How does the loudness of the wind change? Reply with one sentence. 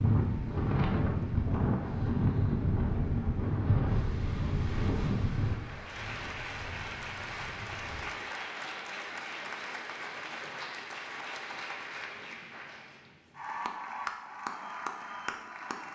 The volume of the wind goes down.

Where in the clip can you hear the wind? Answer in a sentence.
You can hear the wind from 0.0 to 8.1 s.